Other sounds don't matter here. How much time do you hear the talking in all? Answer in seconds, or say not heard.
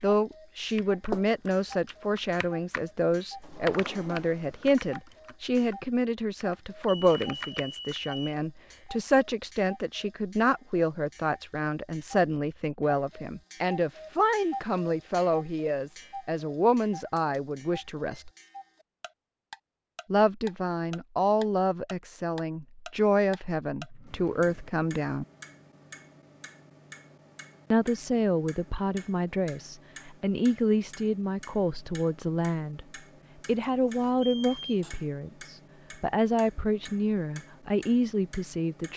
34 s.